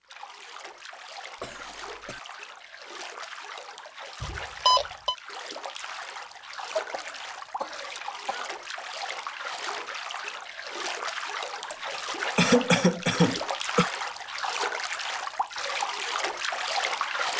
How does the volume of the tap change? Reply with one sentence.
The loudness of the tap goes up.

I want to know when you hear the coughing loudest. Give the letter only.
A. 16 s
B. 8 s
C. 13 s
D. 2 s
C.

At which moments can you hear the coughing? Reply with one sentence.
You can hear the coughing from 1.4 to 2.2 s, from 6.7 to 8.5 s and from 11.7 to 13.9 s.